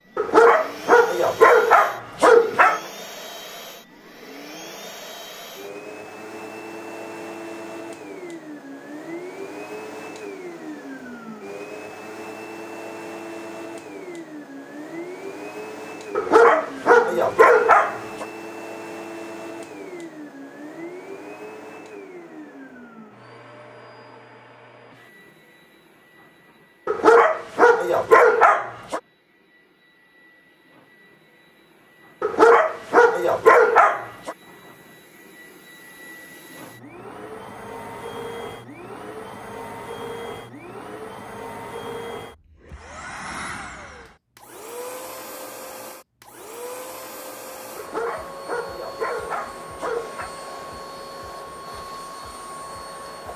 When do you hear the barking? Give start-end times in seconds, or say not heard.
0.1-2.8, 16.1-18.2, 26.9-29.0, 32.2-34.4, 47.8-50.3.